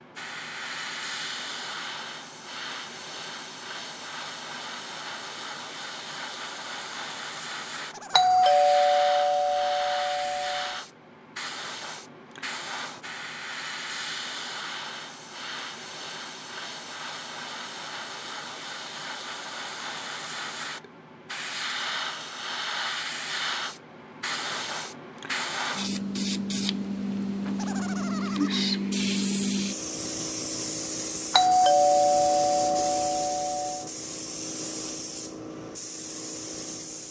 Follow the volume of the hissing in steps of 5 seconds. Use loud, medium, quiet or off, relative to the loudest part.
medium, medium, medium, medium, medium, loud, medium, medium.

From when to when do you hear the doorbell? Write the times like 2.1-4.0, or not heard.
8.1-10.8, 31.3-33.9.